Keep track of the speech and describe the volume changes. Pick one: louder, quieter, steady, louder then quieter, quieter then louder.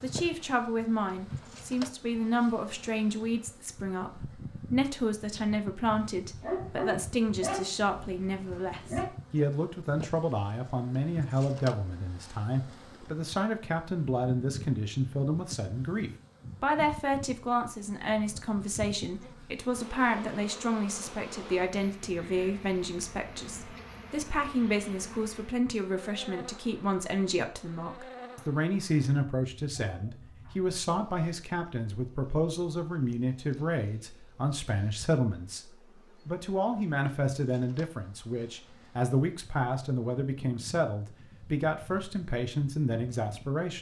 steady.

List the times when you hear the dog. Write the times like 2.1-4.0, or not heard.
6.3-9.1, 29.8-31.4.